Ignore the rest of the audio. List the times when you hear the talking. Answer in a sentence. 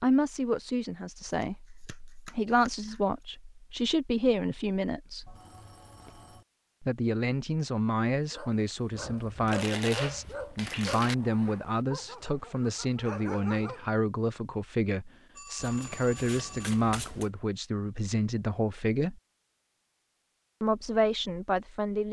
You can hear the talking from 0.0 to 5.3 s, from 6.8 to 19.2 s and from 20.6 to 22.0 s.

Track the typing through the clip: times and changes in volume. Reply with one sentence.
You can't hear the typing here.